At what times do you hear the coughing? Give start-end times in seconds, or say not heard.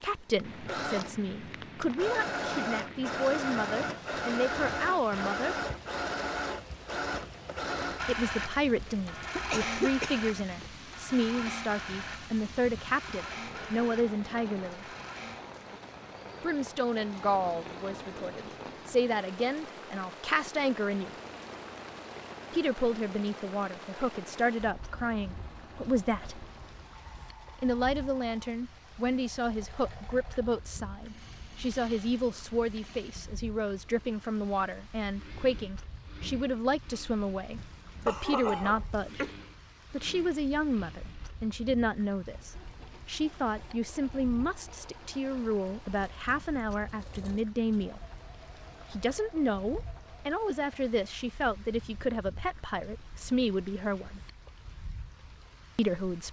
8.8-10.2, 37.5-39.4.